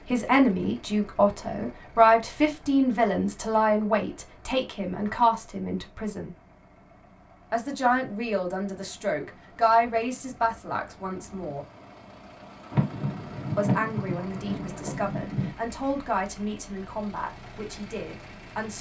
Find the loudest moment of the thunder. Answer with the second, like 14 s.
14 s.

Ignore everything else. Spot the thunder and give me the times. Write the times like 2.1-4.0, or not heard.
12.7-15.6.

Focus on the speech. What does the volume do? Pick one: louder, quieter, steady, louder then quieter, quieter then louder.
quieter.